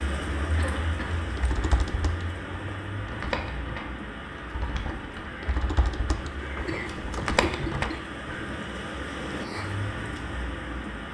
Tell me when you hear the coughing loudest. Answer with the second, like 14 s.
8 s.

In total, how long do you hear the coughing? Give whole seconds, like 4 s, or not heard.
2 s.